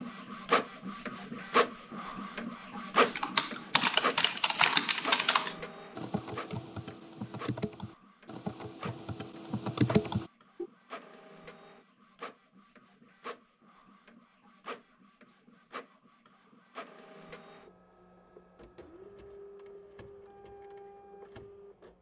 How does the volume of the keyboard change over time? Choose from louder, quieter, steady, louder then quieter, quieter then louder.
quieter then louder.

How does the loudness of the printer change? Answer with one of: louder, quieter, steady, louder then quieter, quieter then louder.
quieter.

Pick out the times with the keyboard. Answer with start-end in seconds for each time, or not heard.
3.0-10.7.